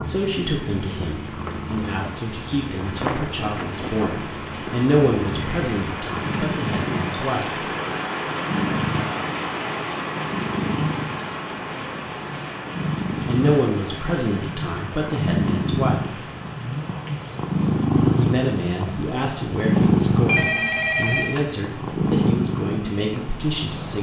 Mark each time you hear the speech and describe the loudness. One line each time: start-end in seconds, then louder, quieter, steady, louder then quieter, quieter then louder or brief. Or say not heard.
0.1-7.6 louder then quieter
13.2-16.1 brief
18.1-23.9 steady.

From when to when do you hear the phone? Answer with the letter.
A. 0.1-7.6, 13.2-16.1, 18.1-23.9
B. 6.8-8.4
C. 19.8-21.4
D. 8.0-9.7
C.